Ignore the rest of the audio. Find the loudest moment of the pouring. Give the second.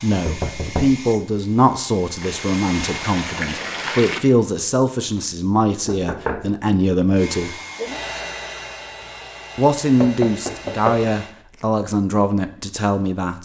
4 s.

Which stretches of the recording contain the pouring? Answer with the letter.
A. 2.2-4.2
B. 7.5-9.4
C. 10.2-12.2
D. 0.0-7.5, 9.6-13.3
A.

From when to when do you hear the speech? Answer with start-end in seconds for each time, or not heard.
0.0-7.5, 9.6-13.3.